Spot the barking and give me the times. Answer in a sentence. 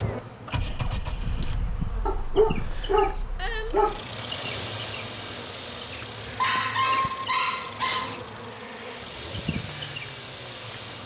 The barking can be heard from 2.0 to 4.0 s and from 6.3 to 8.2 s.